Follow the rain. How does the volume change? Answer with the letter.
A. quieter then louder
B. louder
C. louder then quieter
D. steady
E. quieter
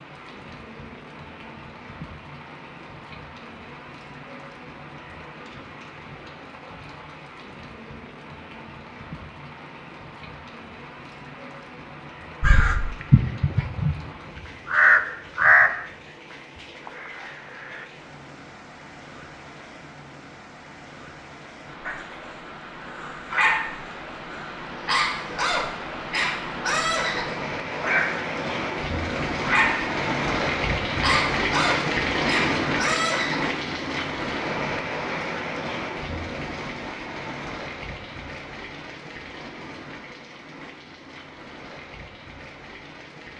C.